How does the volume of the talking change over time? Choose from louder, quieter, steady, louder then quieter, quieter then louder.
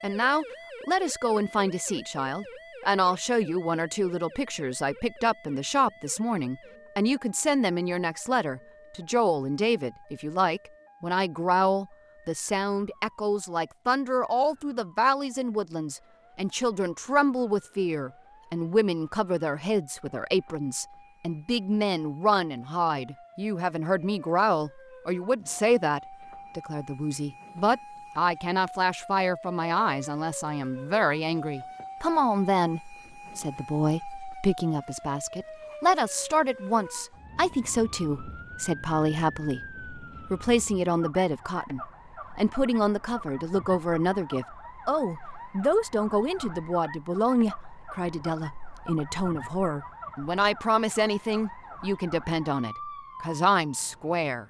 steady.